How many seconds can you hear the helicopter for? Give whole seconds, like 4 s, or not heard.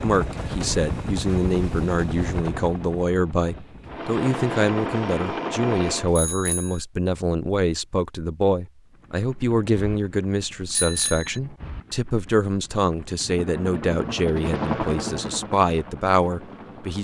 14 s.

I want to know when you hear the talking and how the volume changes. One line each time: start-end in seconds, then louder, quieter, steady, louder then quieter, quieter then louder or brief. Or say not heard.
0.0-16.9 steady.